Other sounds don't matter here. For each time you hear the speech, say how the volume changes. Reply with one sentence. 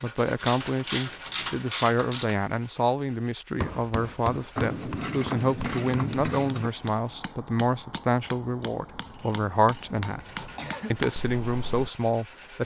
You can hear the speech from 0.0 to 12.6 s, at a steady volume.